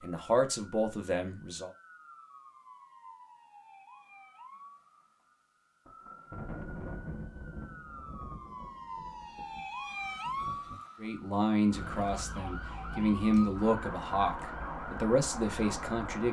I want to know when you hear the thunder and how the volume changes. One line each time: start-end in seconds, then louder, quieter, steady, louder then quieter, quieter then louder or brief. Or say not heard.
5.8-10.8 quieter.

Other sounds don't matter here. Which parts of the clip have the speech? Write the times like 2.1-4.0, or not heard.
0.0-1.7, 11.0-16.2.